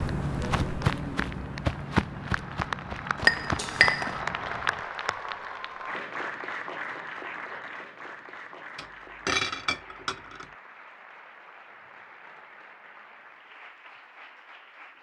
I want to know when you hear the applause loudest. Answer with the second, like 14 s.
4 s.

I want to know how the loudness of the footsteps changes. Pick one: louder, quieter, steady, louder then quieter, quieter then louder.
quieter.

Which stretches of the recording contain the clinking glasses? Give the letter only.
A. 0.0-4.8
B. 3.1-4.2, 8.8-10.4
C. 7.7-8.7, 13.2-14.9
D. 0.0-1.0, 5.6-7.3
B.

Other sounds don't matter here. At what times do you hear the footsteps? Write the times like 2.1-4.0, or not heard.
0.0-4.8.